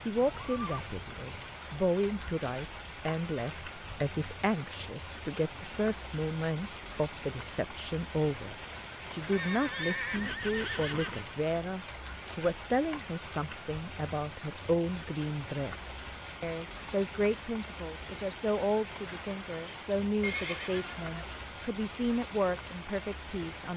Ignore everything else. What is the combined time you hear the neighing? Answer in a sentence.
You can hear the neighing for 4 seconds altogether.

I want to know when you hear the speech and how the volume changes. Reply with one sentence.
You can hear the speech from 0.1 to 23.7 s, at a steady volume.